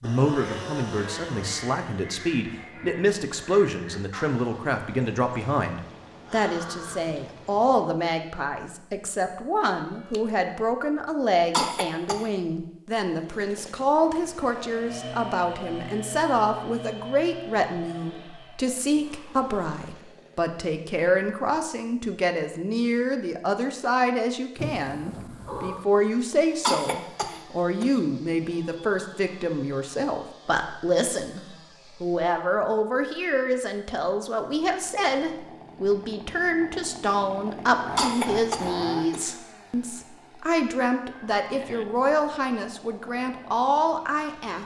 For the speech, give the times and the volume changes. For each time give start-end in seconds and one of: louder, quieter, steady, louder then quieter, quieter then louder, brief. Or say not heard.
0.0-31.4 steady
32.0-44.6 steady.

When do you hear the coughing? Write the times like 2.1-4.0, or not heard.
11.5-12.2, 26.6-28.0, 38.0-39.3.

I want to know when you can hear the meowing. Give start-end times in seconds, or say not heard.
9.8-10.3, 24.6-25.9, 41.0-41.9.